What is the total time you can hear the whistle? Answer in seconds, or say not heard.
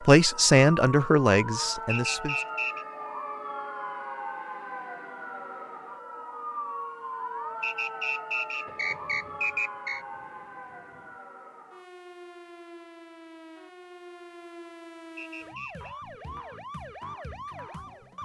4 s.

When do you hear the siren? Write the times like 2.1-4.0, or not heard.
0.0-18.2.